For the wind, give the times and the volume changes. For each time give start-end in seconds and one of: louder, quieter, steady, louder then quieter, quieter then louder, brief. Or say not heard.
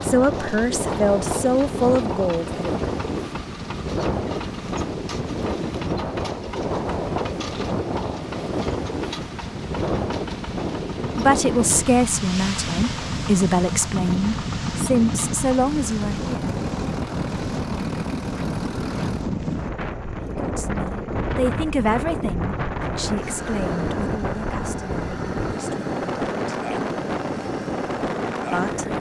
0.0-28.9 steady.